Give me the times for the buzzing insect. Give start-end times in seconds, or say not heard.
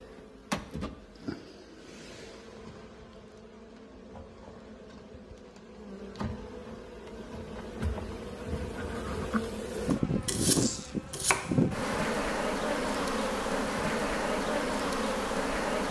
0.0-15.8.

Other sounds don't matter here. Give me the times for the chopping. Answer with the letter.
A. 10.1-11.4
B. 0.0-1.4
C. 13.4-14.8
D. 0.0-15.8
A.